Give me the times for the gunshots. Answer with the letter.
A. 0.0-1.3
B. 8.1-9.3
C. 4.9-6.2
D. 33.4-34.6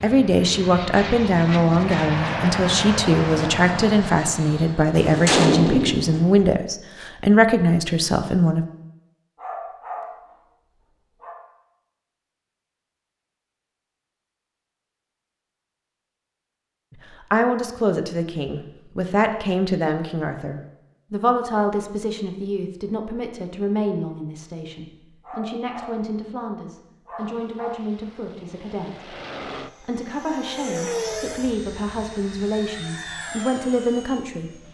C.